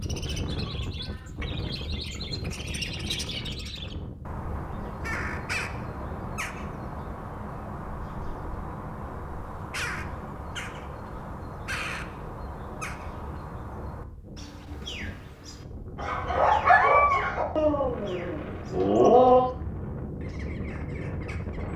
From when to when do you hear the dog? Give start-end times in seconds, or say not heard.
15.9-19.4.